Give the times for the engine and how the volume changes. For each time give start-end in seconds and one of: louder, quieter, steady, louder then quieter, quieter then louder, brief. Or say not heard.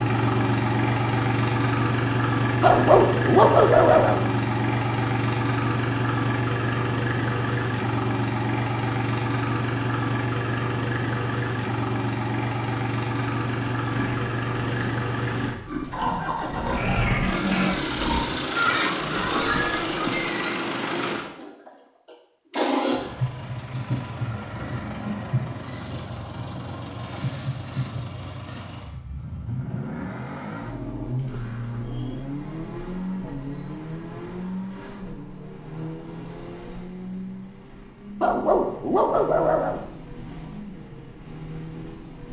0.0-42.2 quieter.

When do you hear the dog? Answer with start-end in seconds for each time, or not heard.
2.6-4.2, 38.2-39.8.